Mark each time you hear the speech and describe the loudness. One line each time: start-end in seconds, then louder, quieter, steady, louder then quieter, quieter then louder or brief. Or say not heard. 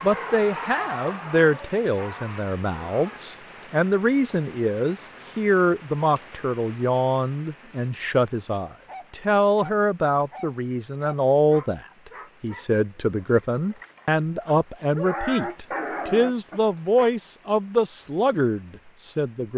0.0-19.5 steady.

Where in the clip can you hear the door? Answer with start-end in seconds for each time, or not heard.
not heard.